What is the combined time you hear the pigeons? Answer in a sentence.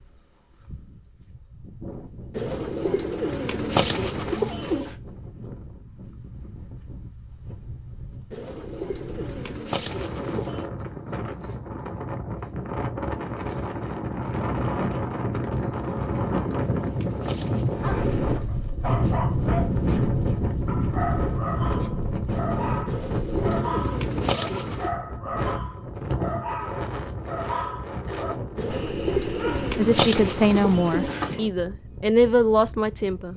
The pigeons can be heard for 12 seconds in total.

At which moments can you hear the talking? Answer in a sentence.
The talking can be heard from 29.8 to 33.3 s.